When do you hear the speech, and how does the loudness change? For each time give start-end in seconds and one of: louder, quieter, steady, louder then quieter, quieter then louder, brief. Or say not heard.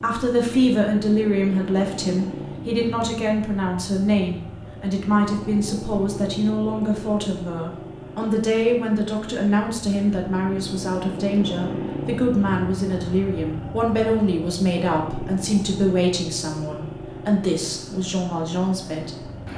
0.0-19.2 steady.